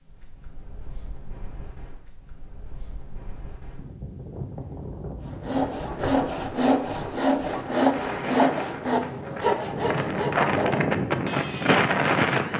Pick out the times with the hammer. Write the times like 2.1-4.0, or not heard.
not heard.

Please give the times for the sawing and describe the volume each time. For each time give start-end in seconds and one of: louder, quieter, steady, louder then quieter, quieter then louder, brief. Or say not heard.
5.2-12.5 quieter.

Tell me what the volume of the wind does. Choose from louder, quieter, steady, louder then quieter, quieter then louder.
louder.